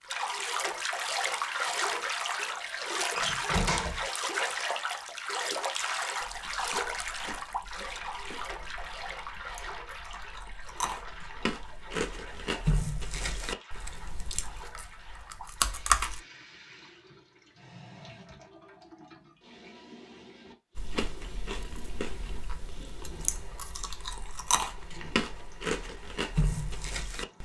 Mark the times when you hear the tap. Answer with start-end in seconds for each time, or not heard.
0.0-27.3.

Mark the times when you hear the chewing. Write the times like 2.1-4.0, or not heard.
6.2-16.2, 20.8-27.3.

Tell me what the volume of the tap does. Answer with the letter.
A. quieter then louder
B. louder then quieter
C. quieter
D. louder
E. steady
C.